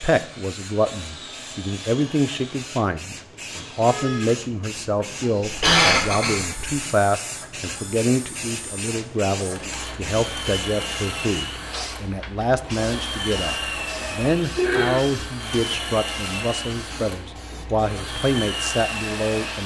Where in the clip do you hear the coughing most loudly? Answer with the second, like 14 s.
6 s.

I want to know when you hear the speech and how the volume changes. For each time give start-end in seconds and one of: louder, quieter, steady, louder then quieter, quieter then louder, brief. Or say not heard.
0.0-19.6 steady.